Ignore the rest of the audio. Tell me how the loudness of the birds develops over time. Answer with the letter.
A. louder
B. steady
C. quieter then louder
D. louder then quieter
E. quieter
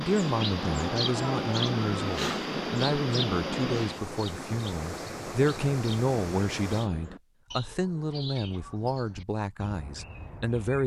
E.